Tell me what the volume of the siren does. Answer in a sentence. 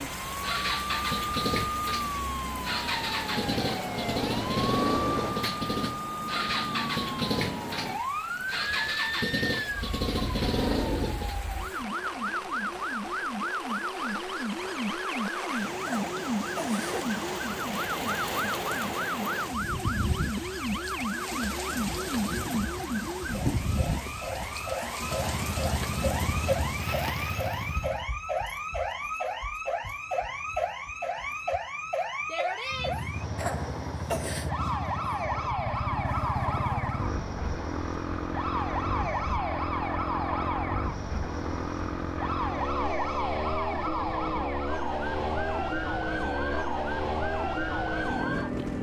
The volume of the siren stays about the same.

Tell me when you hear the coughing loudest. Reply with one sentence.
The loudest moment of the coughing is at 34 seconds.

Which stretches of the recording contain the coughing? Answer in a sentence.
The coughing can be heard from 15.8 to 17.1 s and from 33.4 to 34.5 s.